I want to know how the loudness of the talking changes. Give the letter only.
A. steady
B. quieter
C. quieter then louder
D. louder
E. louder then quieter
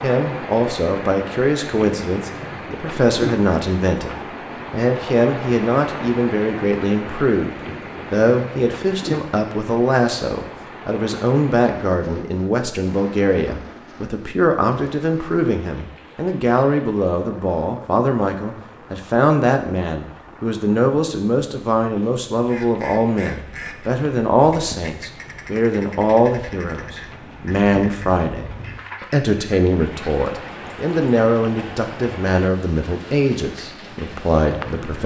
A.